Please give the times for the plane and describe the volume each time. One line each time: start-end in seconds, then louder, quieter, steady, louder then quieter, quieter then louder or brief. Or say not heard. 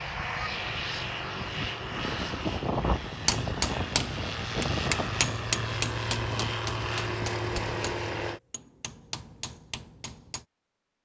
0.0-8.4 steady.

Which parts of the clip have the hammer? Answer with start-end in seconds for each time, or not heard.
3.1-10.4.